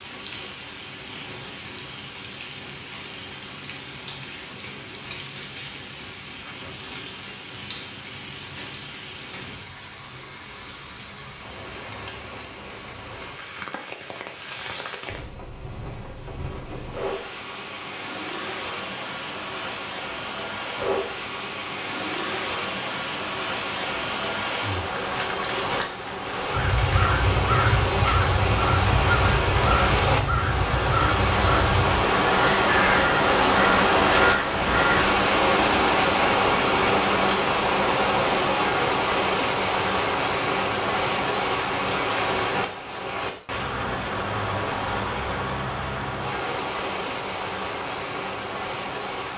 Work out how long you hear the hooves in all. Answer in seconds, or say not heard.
not heard.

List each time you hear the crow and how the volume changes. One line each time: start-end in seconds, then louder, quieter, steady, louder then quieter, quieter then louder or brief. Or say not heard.
26.5-35.1 steady.